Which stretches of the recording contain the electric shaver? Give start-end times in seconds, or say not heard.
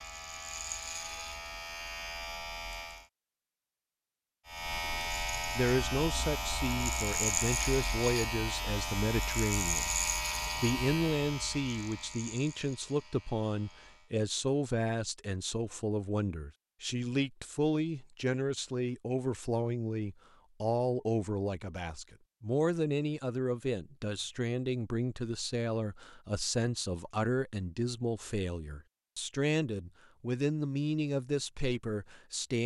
0.0-3.0, 4.5-14.1.